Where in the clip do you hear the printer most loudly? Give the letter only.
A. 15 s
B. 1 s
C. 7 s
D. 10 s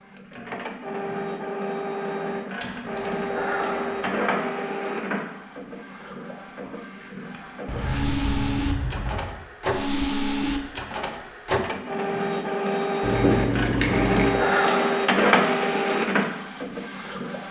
A.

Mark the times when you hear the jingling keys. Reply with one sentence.
The jingling keys can be heard from 2.6 to 4.1 s, from 7.7 to 9.3 s and from 13.0 to 14.4 s.